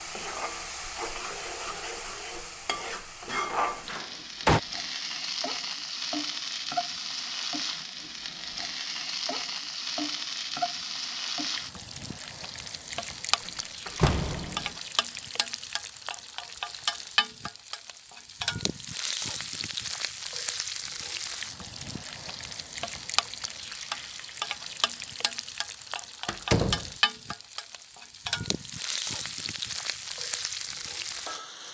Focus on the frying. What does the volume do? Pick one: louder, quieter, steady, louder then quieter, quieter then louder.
steady.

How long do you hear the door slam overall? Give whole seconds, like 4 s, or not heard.
3 s.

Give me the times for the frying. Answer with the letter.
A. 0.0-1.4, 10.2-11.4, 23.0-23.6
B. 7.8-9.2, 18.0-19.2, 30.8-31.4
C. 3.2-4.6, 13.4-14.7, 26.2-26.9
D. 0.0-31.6
D.